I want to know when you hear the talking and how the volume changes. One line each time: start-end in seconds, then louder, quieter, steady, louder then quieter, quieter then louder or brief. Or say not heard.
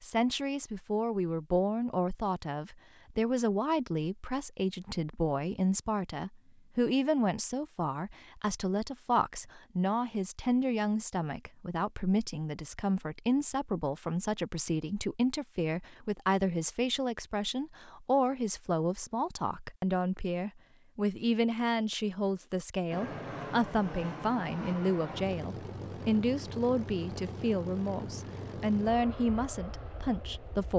0.0-30.7 steady.